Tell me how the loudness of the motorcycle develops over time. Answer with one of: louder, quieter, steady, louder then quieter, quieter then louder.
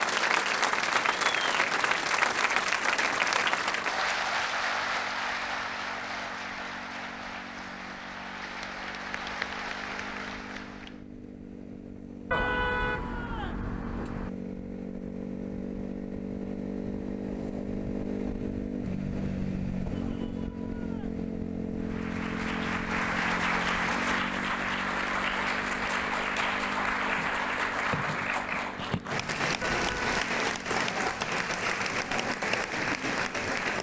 louder then quieter.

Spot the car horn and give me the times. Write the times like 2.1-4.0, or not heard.
12.3-14.3, 29.6-30.1.